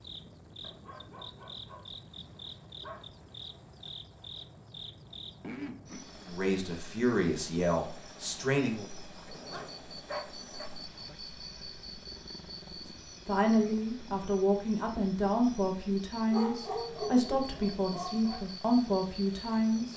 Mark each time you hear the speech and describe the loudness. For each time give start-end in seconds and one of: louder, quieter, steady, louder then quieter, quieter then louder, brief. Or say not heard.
6.2-8.8 brief
13.2-19.9 steady.